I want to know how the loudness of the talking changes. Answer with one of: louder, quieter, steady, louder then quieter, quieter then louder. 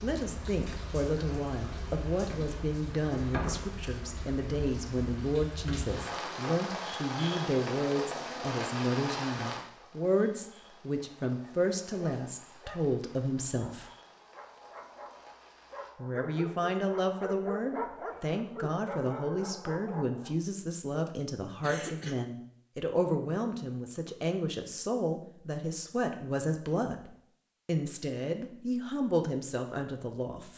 steady.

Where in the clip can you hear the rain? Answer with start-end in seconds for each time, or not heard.
0.0-15.9.